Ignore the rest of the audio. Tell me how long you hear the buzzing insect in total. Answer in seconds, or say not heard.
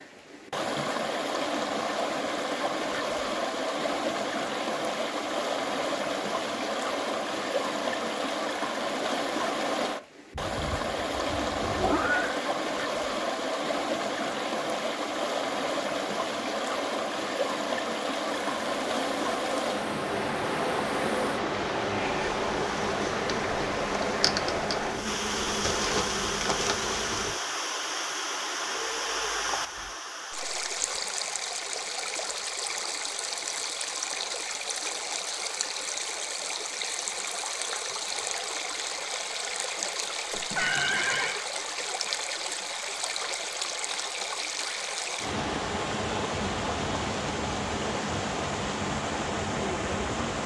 9 s.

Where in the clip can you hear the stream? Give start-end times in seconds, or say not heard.
0.0-50.4.